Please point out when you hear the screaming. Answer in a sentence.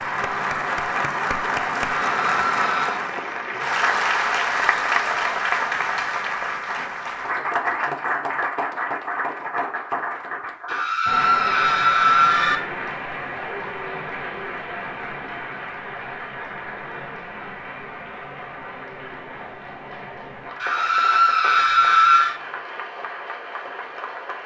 You can hear the screaming from 2.0 to 3.0 s, from 10.7 to 12.6 s and from 20.6 to 22.4 s.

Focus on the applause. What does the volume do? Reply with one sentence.
The volume of the applause goes down.